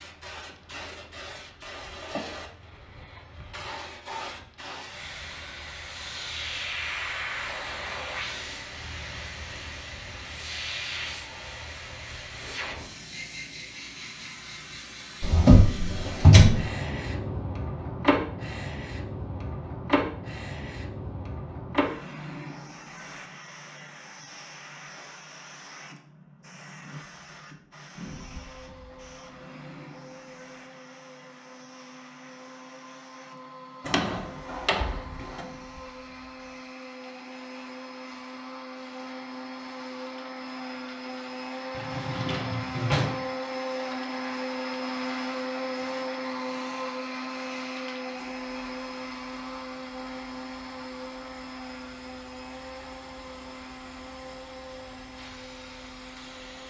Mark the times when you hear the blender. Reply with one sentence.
The blender can be heard from 28.0 to 56.6 s.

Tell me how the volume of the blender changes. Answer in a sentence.
The volume of the blender goes up, then down.